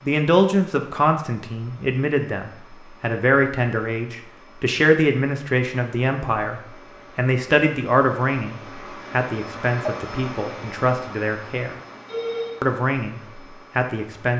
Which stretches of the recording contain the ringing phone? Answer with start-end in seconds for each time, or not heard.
12.1-12.6.